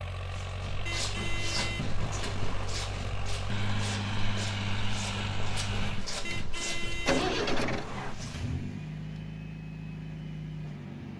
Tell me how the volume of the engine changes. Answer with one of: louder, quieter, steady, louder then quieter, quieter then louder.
louder then quieter.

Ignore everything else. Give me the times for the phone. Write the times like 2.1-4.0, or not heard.
not heard.